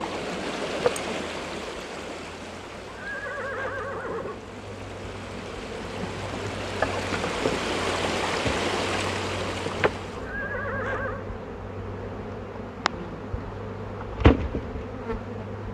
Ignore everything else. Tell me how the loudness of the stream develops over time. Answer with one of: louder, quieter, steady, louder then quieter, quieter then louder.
quieter then louder.